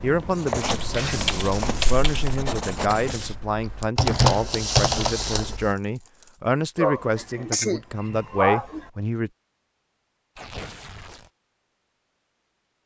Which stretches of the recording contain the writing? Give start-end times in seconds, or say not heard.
0.0-3.4.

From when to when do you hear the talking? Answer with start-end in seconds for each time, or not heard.
0.0-9.3.